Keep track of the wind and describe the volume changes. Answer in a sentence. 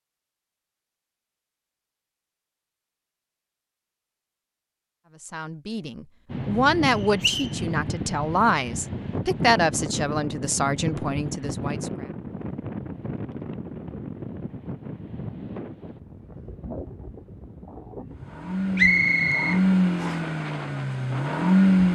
The loudness of the wind goes down.